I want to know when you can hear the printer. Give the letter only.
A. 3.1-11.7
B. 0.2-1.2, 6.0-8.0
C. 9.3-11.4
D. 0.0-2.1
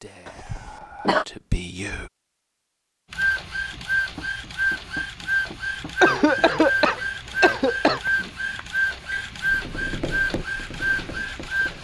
A.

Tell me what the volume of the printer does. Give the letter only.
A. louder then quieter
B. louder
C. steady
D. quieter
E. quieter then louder
C.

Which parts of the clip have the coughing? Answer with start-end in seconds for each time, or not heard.
0.2-1.2, 6.0-8.0.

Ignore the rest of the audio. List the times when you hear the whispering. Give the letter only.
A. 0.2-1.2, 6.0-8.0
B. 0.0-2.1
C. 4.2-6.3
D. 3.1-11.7
B.